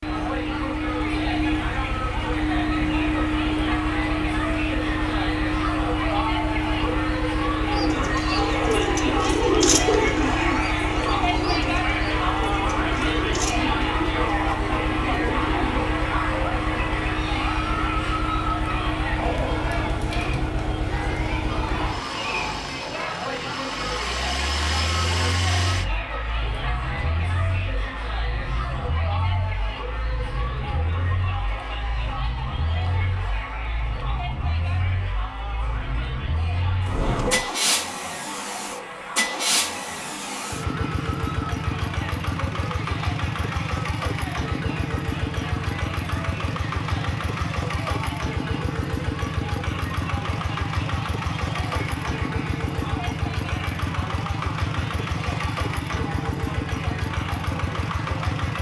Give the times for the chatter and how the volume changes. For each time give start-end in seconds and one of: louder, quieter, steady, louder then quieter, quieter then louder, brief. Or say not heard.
0.0-58.5 quieter.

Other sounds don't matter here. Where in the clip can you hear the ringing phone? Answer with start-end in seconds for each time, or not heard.
not heard.